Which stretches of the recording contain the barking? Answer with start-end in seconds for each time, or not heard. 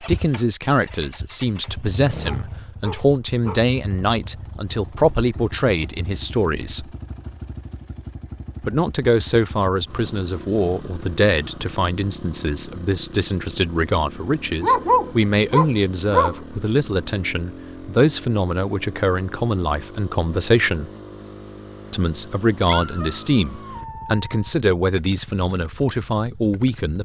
2.2-3.6, 14.6-16.4, 22.6-24.5.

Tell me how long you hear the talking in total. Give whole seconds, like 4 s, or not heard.
24 s.